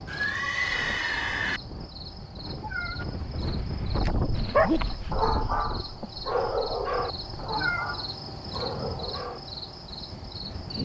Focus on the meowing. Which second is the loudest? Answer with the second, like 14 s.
8 s.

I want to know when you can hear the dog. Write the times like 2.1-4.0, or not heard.
4.3-9.4.